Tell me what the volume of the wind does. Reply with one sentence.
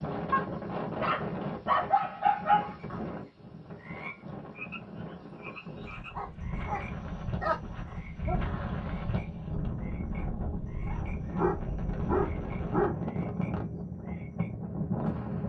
The volume of the wind goes down, then up.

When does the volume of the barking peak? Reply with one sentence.
The volume of the barking peaks at 2 seconds.